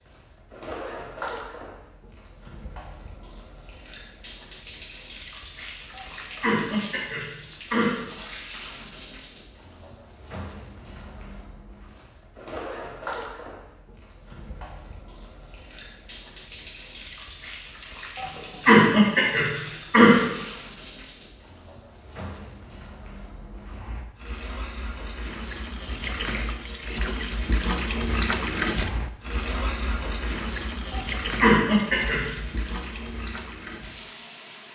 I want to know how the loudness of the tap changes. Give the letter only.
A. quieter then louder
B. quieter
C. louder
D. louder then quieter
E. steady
C.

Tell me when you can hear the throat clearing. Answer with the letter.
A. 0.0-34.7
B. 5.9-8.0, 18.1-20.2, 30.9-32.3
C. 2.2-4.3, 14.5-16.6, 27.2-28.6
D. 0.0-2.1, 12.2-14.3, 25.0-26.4
B.